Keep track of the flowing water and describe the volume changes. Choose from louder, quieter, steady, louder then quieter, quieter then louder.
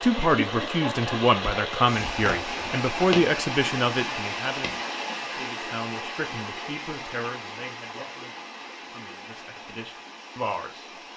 quieter.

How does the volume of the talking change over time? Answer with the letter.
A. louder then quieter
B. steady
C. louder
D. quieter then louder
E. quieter
E.